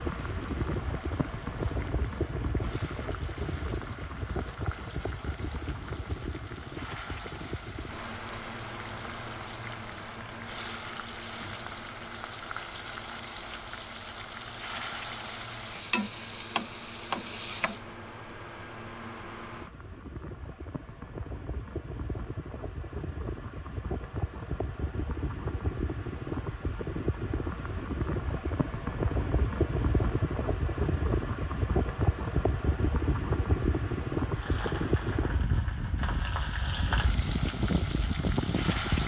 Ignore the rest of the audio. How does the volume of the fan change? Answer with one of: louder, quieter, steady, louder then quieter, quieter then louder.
quieter then louder.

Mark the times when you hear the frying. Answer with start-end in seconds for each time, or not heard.
0.0-17.8, 34.4-39.0.